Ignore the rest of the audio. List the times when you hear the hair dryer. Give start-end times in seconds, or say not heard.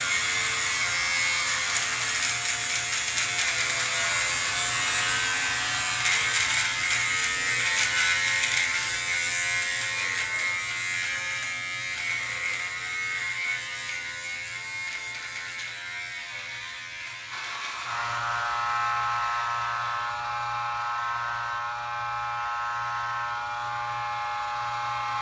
0.0-6.3, 17.3-25.1.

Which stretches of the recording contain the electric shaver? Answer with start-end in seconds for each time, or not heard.
0.0-25.1.